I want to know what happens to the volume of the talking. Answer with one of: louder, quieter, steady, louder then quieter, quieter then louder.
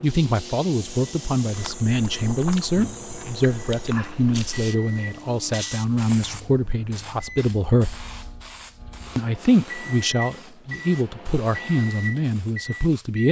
steady.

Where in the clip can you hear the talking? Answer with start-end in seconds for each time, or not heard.
0.0-8.0, 9.2-13.2.